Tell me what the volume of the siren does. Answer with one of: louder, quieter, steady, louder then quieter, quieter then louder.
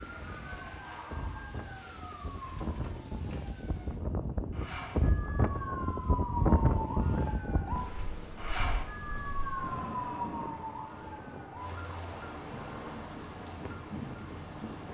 louder then quieter.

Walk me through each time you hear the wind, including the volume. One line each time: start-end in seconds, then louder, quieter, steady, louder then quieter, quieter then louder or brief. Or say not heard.
0.0-14.8 louder then quieter.